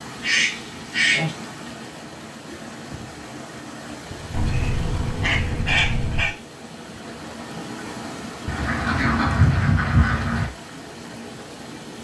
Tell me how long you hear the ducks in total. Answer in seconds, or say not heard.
5 s.